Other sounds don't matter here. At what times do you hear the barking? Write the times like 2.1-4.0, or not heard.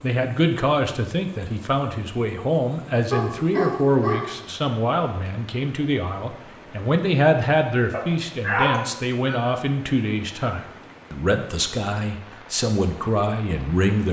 3.1-4.3, 7.9-9.4.